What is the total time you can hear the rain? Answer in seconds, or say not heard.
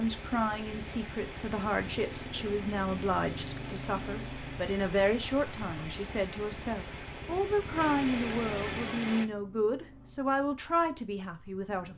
9 s.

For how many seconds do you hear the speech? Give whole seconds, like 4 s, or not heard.
12 s.